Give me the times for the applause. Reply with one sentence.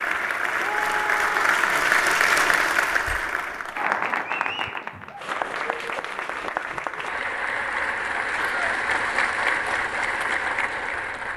The applause can be heard from 0.0 to 11.3 s.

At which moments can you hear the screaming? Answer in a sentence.
You can hear the screaming from 0.6 to 1.5 s and from 8.3 to 8.8 s.